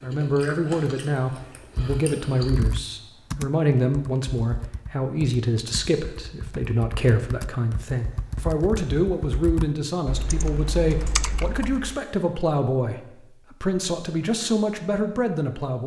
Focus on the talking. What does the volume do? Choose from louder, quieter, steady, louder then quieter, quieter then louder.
steady.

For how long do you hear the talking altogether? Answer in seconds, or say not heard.
16 s.